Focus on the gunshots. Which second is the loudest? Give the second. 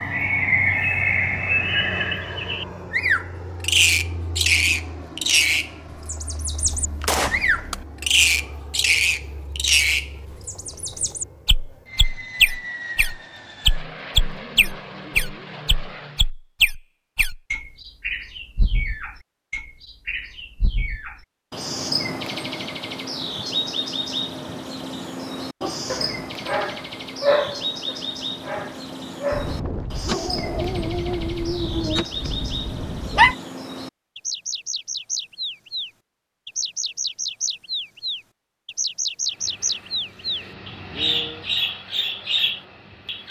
7 s.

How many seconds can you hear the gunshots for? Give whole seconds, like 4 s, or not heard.
5 s.